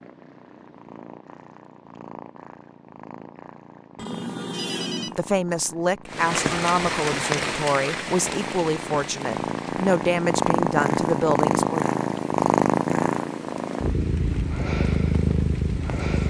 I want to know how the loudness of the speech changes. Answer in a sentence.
The loudness of the speech stays about the same.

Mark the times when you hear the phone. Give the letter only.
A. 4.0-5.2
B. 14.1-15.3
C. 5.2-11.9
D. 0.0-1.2
A.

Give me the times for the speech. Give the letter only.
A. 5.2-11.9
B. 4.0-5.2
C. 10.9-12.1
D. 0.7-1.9
A.